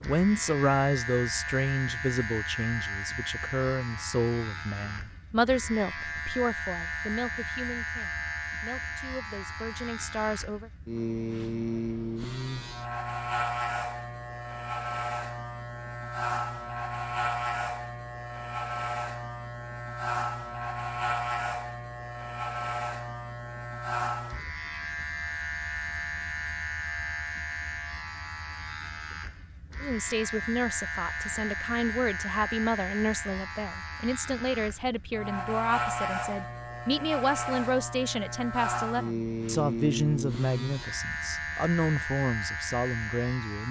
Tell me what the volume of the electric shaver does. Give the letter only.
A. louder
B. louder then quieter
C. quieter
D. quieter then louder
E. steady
E.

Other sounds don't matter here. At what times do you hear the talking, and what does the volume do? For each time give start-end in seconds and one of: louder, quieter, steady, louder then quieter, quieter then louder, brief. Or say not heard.
0.0-10.7 quieter
29.8-43.6 steady.